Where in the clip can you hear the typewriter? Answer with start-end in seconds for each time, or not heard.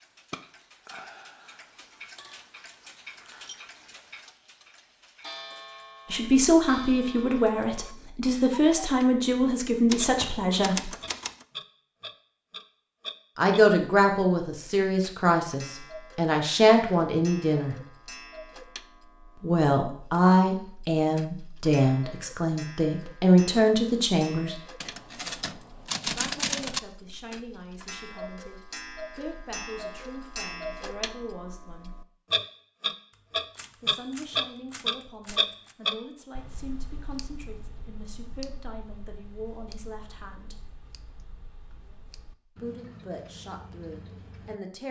9.8-11.4, 24.8-26.8, 33.1-35.8.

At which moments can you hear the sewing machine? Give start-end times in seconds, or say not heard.
not heard.